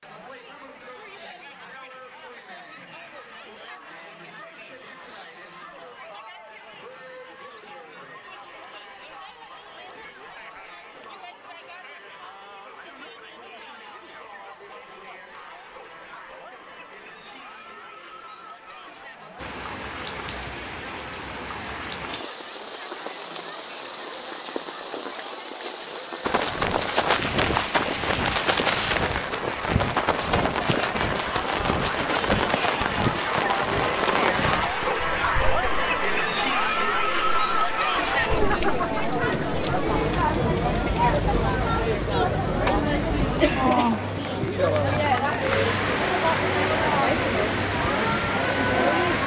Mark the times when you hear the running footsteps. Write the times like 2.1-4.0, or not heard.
26.2-35.0.